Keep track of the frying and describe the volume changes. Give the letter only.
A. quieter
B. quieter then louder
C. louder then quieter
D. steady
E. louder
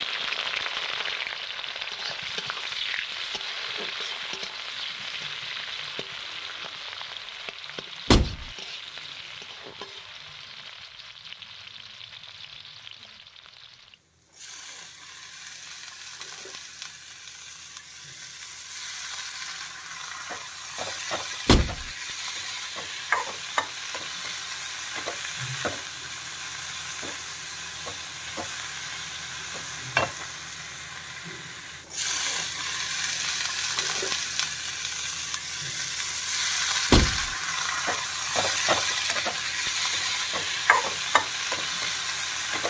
B.